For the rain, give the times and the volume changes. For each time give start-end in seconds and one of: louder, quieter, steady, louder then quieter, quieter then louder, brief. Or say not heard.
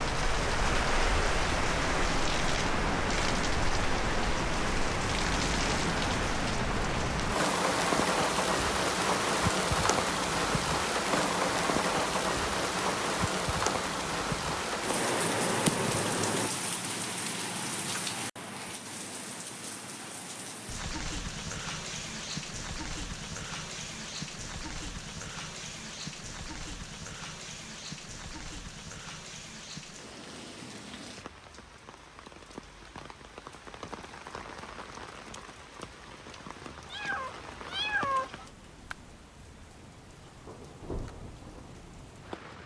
0.0-42.6 quieter.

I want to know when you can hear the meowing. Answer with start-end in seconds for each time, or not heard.
36.9-38.5.